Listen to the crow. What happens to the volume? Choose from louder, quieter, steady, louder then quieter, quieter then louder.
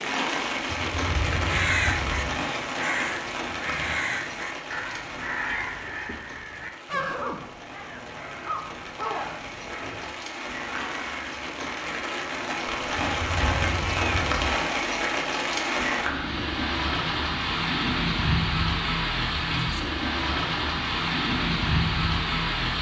quieter.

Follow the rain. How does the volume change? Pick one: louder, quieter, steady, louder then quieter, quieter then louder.
quieter then louder.